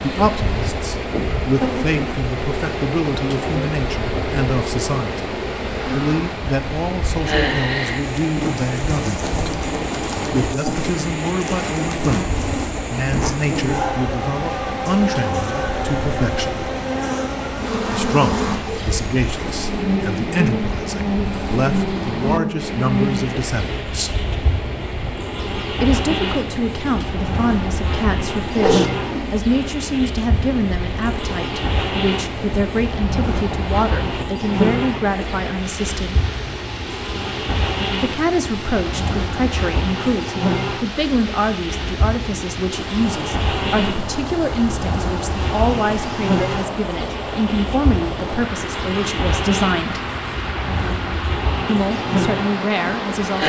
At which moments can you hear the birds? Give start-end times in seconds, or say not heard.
not heard.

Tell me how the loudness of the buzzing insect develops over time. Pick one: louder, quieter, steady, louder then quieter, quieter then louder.
steady.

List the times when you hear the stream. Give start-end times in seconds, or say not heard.
0.0-53.4.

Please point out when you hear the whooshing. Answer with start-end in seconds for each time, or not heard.
28.6-29.3.